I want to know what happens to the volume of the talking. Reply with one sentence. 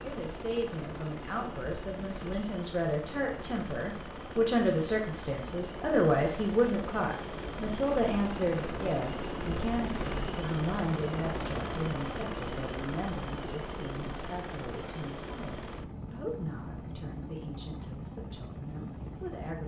The loudness of the talking goes up, then down.